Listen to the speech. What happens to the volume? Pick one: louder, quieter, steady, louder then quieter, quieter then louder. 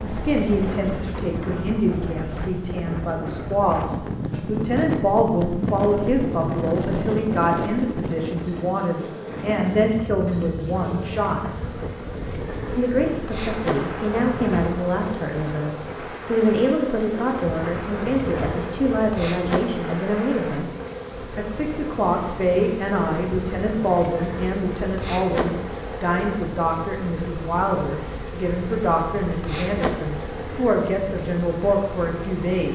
steady.